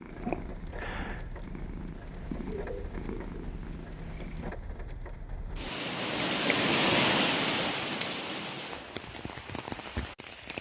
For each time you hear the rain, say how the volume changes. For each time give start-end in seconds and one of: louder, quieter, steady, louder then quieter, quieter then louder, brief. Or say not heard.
0.0-10.5 louder then quieter.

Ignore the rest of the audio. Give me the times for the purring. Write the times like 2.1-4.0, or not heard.
0.0-4.5.